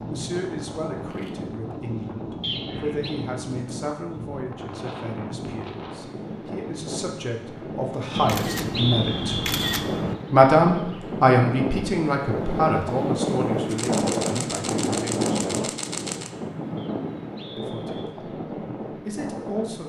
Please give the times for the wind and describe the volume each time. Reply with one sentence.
The wind can be heard from 0.0 to 19.8 s, getting louder then quieter.